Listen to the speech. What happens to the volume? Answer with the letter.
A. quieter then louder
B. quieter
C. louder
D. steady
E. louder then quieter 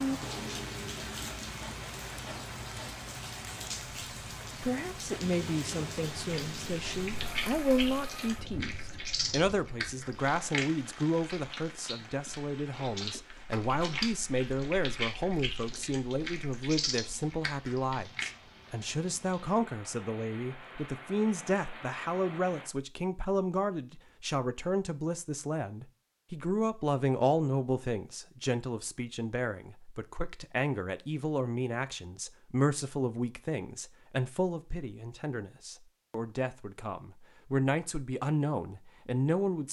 D.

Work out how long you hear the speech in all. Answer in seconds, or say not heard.
35 s.